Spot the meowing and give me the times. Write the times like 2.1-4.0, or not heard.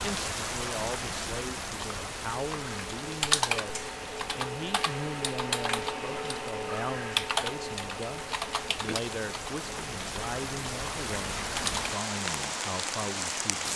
not heard.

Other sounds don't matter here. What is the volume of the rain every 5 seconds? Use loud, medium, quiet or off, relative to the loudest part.
loud, medium, loud.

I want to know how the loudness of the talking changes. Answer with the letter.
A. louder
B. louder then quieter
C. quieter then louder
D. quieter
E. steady
E.